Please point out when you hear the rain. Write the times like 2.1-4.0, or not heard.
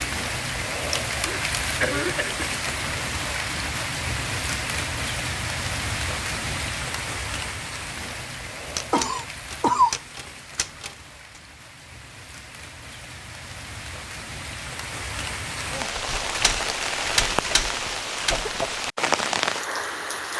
0.0-20.3.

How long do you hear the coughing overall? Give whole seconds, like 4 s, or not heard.
4 s.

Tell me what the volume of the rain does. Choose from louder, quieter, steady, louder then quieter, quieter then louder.
quieter then louder.